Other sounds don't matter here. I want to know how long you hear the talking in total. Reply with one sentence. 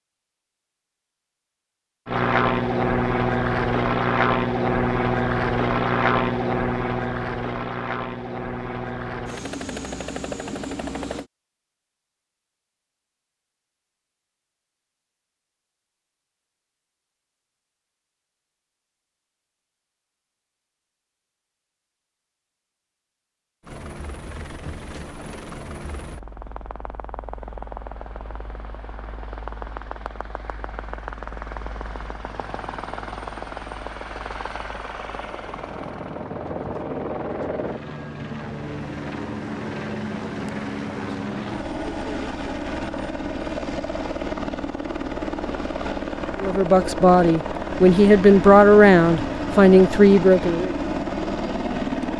You can hear the talking for 4 seconds altogether.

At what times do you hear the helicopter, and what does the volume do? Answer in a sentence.
The helicopter can be heard from 2.0 to 11.3 s, getting quieter; and from 23.6 to 52.1 s, getting louder.